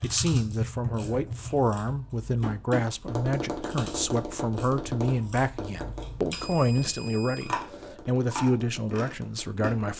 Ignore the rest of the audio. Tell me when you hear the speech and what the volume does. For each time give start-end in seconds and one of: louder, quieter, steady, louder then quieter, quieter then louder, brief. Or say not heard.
0.0-9.9 steady.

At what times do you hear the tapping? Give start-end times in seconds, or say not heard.
0.0-9.7.